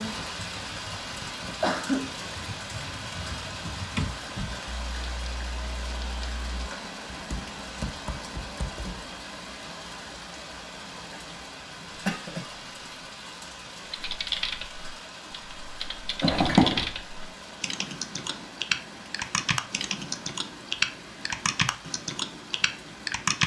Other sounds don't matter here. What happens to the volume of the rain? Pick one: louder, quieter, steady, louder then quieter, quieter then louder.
quieter.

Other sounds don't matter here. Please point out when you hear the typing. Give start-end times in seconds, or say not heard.
0.0-9.1, 13.8-23.4.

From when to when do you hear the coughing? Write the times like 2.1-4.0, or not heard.
1.4-2.0, 11.9-13.0, 16.2-16.9.